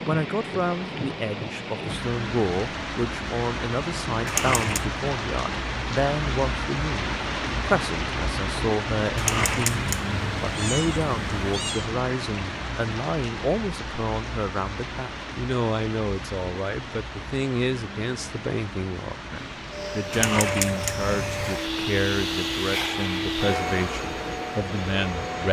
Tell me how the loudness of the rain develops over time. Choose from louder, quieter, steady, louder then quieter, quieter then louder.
quieter.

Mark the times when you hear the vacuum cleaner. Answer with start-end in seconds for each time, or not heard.
19.4-25.4.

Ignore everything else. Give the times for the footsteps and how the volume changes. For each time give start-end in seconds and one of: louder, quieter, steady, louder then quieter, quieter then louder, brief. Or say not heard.
not heard.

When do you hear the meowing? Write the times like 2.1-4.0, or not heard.
4.2-4.9, 9.2-11.9, 20.1-21.6.